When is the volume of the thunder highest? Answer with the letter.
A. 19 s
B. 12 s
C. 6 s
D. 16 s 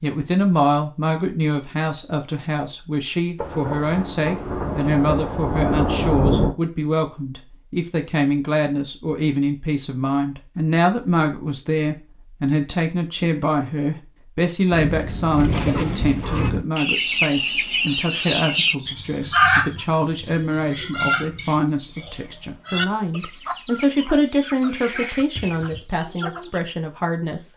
C.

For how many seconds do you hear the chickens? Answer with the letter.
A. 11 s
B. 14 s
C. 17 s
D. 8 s
A.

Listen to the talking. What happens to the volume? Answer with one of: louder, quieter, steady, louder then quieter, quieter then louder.
steady.